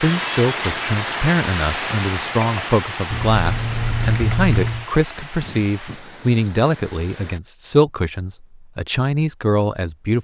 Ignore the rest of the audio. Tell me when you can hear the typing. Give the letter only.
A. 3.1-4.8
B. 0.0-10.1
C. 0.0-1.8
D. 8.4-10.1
A.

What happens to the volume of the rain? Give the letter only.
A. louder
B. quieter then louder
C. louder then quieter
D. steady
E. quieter
E.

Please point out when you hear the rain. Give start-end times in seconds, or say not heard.
0.0-7.4.